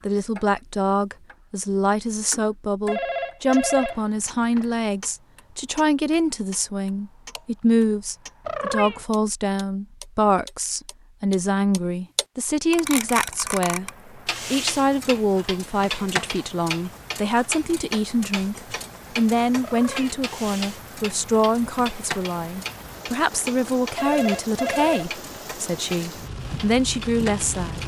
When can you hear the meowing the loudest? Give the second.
9 s.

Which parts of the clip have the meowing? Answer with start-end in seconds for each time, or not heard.
8.4-9.1, 19.6-20.1.